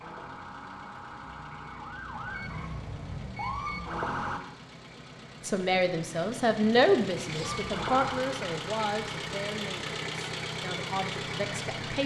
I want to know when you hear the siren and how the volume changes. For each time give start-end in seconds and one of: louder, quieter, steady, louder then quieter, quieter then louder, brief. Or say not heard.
0.0-4.4 louder
7.4-9.4 brief.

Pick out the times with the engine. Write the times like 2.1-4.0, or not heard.
0.0-12.0.